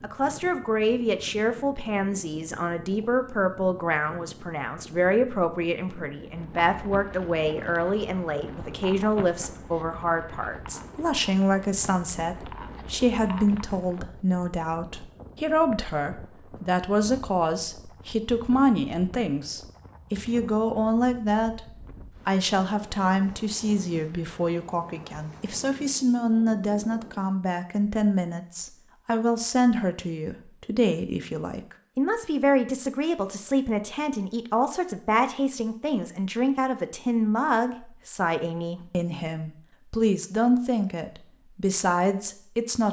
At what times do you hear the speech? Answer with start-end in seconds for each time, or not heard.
0.0-42.8.